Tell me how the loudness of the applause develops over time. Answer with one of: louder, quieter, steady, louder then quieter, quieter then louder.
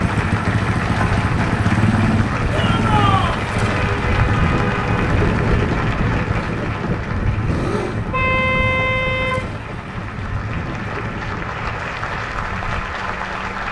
quieter then louder.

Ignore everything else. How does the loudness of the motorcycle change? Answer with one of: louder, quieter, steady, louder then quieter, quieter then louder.
quieter.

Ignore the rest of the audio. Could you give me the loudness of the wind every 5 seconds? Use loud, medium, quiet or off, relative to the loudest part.
loud, loud, medium.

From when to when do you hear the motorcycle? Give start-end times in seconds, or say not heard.
0.0-11.3.